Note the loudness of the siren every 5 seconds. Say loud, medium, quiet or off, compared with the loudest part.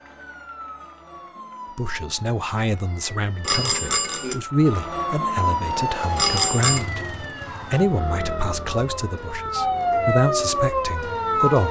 quiet, medium, loud.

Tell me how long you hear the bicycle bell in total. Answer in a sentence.
You can hear the bicycle bell for 2 seconds altogether.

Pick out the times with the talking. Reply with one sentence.
The talking can be heard from 1.8 to 7.0 s and from 7.7 to 11.6 s.